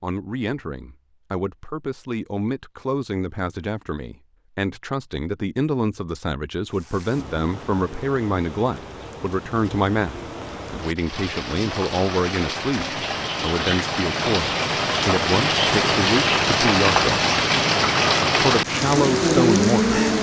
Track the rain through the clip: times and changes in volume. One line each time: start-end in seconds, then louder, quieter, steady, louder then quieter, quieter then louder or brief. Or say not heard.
6.7-20.1 louder.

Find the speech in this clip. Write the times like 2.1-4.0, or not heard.
0.0-17.1, 18.4-20.0.